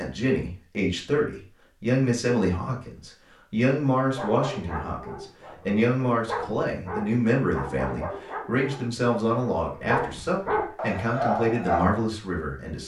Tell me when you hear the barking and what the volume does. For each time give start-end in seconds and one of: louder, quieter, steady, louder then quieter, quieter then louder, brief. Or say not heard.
4.2-11.8 louder.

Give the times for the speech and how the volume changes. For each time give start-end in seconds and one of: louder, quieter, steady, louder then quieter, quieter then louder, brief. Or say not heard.
0.0-12.8 steady.